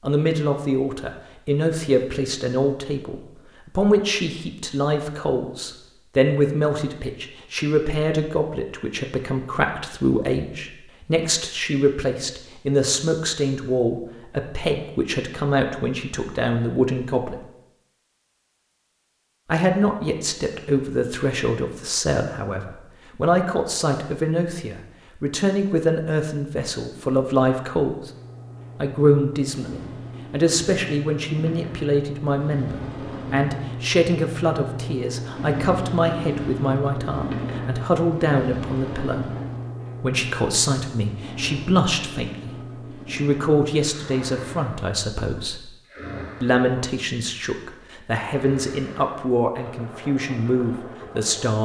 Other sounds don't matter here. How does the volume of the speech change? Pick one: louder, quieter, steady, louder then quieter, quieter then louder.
steady.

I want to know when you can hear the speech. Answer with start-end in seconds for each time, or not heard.
0.0-17.4, 19.4-28.1, 28.8-39.3, 40.0-45.8, 46.4-51.5.